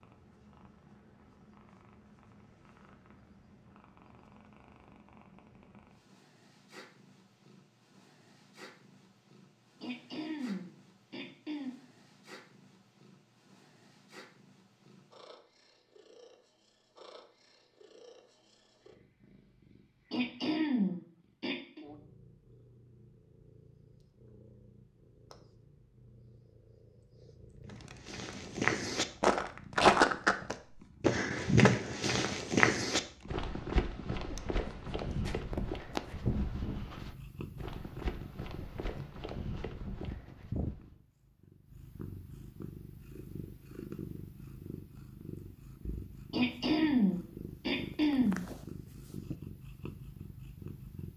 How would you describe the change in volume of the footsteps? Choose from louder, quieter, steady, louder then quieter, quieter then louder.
quieter.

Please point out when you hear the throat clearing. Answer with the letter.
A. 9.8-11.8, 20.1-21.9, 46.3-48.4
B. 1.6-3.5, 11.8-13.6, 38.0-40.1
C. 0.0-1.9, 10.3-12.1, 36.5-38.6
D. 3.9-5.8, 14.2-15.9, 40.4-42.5
A.